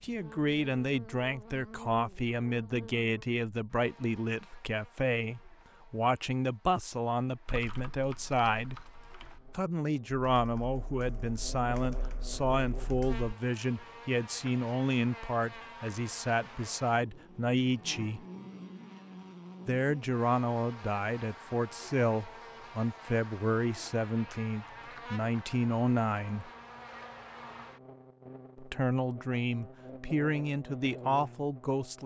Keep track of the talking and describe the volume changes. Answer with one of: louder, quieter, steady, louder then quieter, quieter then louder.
steady.